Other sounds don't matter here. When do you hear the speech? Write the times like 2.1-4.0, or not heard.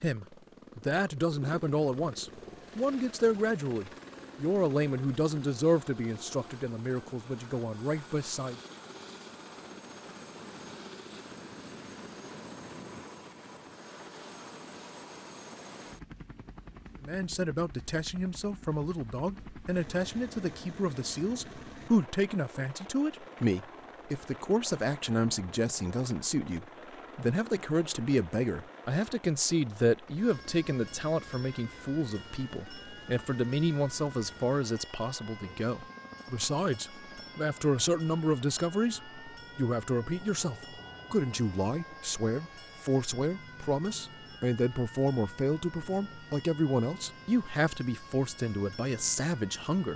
0.0-8.6, 17.0-49.9.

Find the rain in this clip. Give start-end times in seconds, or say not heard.
not heard.